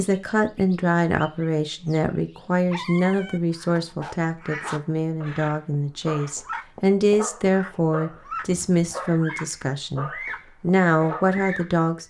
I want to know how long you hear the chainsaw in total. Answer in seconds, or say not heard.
not heard.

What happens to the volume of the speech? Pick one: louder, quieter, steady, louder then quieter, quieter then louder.
steady.